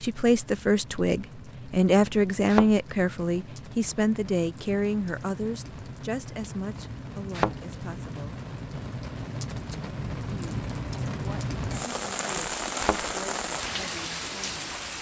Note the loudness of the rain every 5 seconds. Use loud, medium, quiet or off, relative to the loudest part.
quiet, medium, loud.